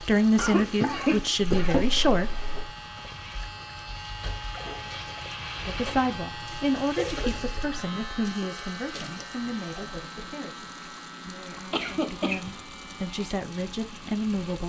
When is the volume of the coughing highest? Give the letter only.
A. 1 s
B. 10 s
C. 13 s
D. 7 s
A.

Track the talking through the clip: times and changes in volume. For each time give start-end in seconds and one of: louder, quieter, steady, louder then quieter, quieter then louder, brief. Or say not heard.
0.0-2.5 brief
5.6-14.6 quieter then louder.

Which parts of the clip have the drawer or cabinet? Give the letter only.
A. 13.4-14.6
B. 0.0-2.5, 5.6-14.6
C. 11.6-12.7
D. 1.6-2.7
D.